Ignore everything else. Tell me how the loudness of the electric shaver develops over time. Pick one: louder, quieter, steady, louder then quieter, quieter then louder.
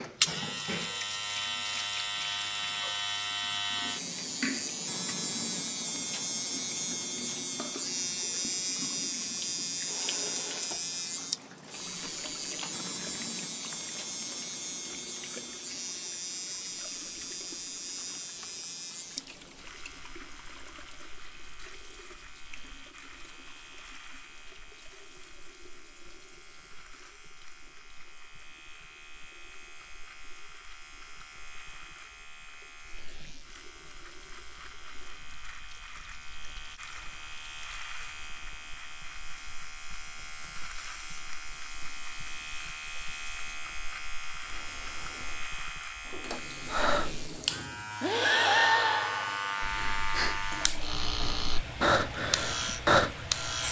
quieter then louder.